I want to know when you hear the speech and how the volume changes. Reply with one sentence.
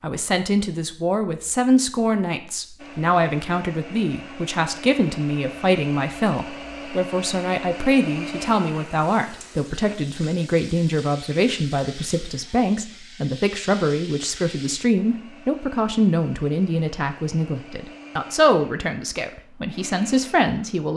The speech can be heard from 0.0 to 20.9 s, at a steady volume.